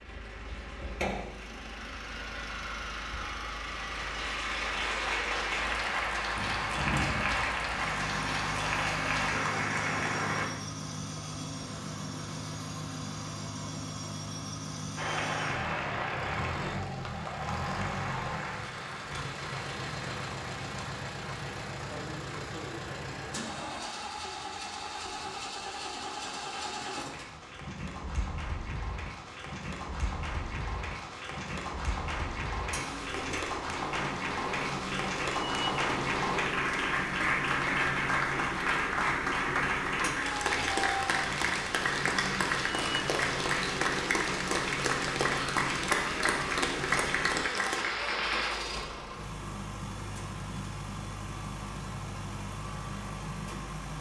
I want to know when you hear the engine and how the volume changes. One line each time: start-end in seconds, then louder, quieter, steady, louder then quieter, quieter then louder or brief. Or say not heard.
0.0-53.9 steady.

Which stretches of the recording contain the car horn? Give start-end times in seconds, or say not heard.
not heard.